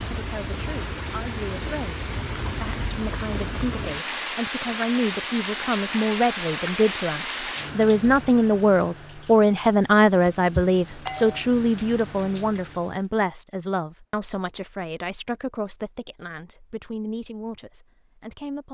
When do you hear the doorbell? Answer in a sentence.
You can hear the doorbell from 10.2 to 11.4 s.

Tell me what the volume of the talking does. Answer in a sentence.
The loudness of the talking goes up, then down.